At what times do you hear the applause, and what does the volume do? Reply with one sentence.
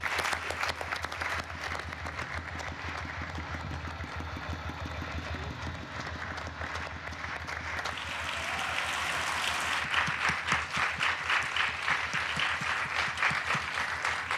You can hear the applause from 0.0 to 14.3 s, getting quieter then louder.